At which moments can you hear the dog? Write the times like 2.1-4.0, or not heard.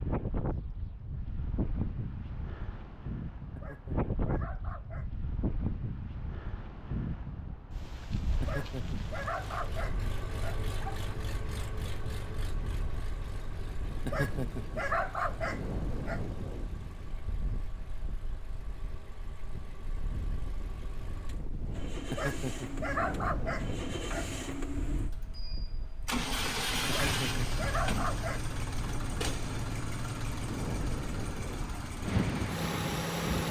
3.5-5.1, 8.4-11.1, 14.1-16.2, 22.1-24.3, 26.9-28.4.